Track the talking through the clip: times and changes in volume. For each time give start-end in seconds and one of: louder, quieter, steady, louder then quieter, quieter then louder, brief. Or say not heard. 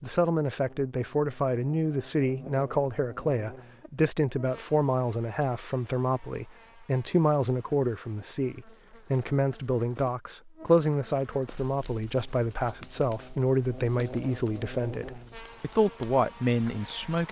0.0-17.2 steady.